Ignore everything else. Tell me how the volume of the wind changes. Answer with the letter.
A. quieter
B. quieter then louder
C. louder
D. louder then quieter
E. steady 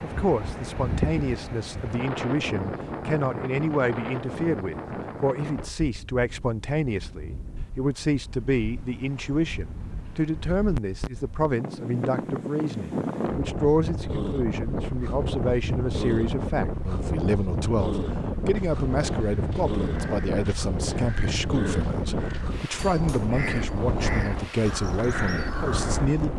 B.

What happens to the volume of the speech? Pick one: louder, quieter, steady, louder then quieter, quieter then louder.
steady.